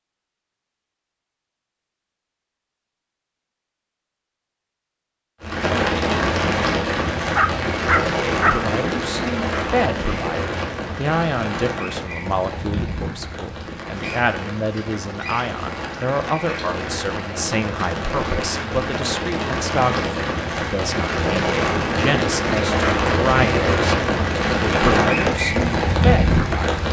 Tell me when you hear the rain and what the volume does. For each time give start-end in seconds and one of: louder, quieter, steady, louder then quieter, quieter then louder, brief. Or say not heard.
5.4-26.8 quieter then louder.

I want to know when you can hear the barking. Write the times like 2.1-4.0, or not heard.
7.3-8.6.